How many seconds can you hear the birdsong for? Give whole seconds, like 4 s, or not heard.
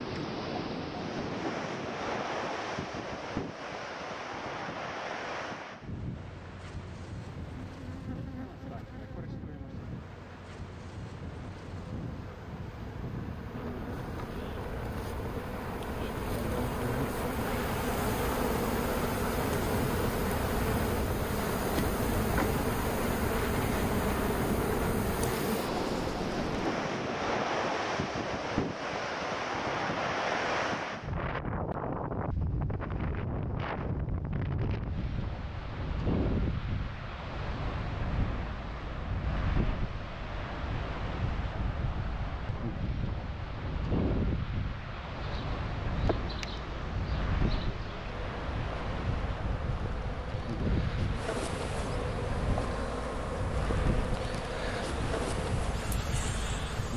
not heard.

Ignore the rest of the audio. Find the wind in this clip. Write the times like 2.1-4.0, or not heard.
0.0-56.9.